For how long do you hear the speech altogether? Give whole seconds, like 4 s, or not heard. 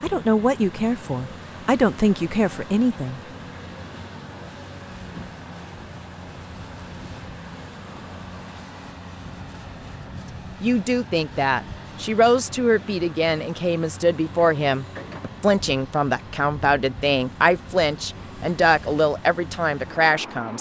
13 s.